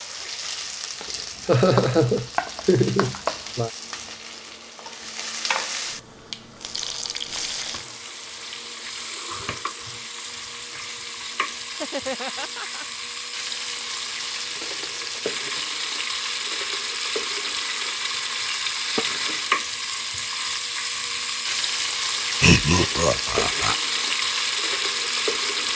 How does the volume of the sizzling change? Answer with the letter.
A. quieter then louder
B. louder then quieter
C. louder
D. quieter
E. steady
C.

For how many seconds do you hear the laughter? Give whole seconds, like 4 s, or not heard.
5 s.